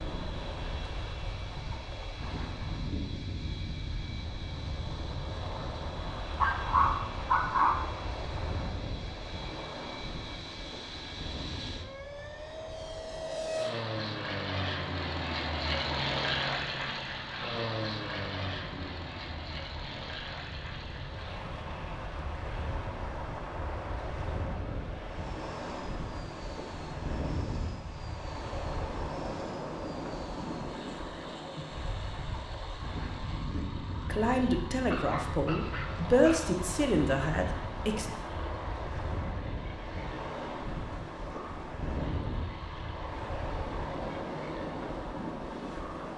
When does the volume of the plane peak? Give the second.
16 s.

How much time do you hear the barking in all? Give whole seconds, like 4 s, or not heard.
3 s.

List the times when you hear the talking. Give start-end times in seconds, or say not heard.
34.0-38.1.